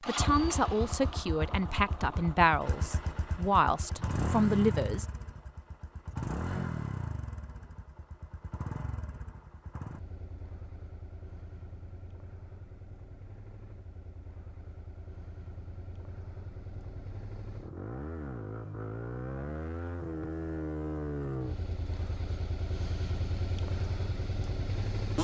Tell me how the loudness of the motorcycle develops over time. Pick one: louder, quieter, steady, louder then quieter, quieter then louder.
quieter then louder.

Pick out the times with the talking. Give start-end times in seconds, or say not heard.
0.1-5.0.